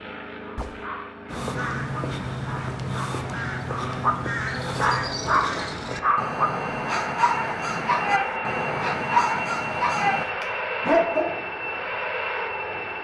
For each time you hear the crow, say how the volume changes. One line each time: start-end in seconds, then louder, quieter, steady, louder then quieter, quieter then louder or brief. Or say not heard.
1.2-10.2 steady.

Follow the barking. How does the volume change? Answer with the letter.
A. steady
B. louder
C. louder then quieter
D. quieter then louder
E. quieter
B.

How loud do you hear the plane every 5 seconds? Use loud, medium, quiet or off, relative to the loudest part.
medium, loud, loud.